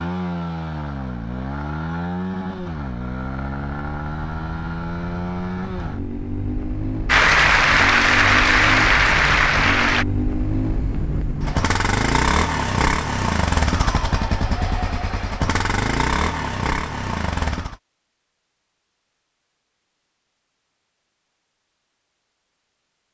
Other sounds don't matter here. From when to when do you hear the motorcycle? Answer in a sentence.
You can hear the motorcycle from 0.0 to 17.8 s.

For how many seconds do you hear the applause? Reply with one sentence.
The applause can be heard for 3 seconds in total.